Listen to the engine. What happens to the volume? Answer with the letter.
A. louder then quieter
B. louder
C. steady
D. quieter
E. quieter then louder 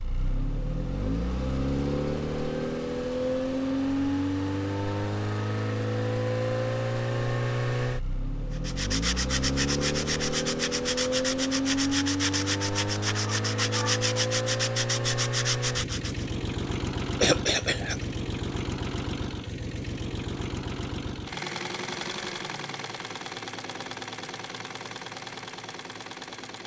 D.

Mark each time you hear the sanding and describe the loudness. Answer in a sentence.
You can hear the sanding from 8.5 to 16.2 s, at a steady volume.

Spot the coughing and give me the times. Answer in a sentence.
The coughing can be heard from 17.2 to 18.1 s.